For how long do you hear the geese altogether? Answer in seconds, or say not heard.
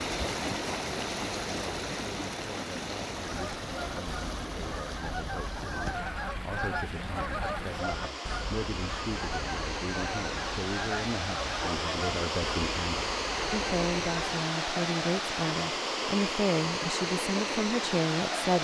11 s.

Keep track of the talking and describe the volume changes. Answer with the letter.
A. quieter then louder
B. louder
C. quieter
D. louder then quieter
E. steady
B.